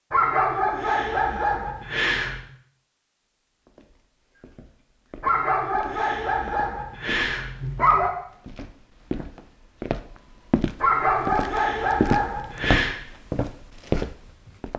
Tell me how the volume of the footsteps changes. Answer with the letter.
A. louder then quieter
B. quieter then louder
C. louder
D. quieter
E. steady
C.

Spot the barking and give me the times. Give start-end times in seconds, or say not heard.
0.1-2.5, 5.2-8.1, 10.8-12.9.